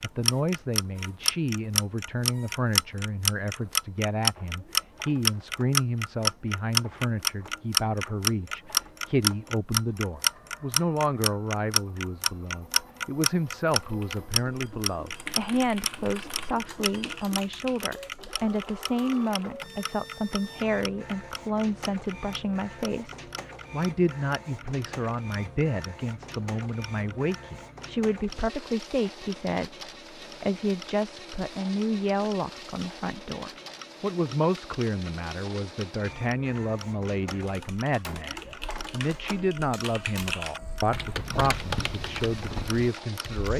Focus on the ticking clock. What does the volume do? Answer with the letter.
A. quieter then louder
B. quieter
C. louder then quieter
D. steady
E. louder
B.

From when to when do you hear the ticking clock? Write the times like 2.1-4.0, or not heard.
0.0-43.5.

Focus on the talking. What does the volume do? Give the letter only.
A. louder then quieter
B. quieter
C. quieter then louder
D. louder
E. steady
E.